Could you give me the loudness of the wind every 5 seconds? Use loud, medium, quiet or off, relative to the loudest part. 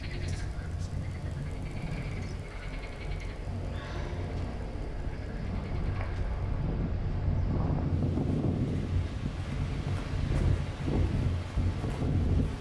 medium, loud, loud.